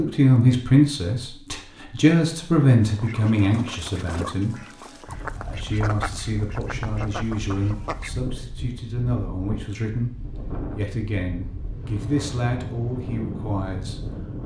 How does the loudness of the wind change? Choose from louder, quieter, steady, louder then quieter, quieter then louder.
louder.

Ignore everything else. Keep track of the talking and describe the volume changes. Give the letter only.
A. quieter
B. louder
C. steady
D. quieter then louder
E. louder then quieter
A.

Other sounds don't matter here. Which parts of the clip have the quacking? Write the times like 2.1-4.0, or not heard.
2.8-8.2.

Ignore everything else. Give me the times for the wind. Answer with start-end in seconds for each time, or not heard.
5.0-14.4.